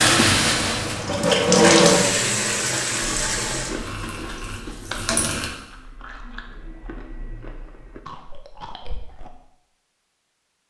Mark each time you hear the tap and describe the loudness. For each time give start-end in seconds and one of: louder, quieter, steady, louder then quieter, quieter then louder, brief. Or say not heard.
0.0-5.5 louder then quieter.